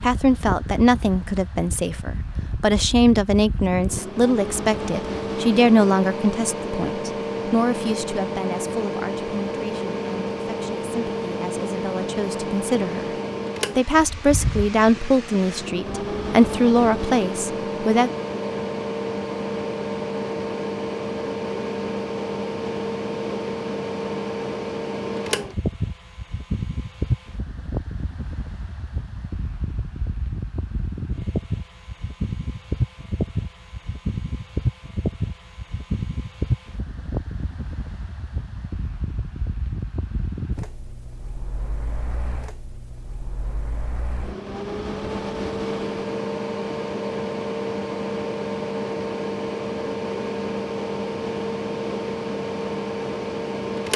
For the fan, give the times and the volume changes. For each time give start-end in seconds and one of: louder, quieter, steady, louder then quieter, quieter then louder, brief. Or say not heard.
0.0-53.9 steady.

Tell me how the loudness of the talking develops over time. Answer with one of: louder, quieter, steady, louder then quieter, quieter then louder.
quieter then louder.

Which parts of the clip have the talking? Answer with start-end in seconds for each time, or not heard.
0.0-13.1, 13.8-18.1.